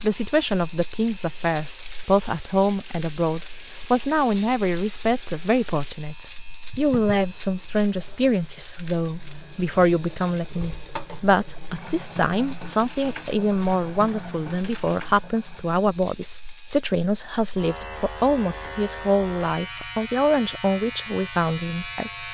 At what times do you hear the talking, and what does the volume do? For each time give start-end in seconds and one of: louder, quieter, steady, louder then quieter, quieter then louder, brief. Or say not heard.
0.0-22.2 steady.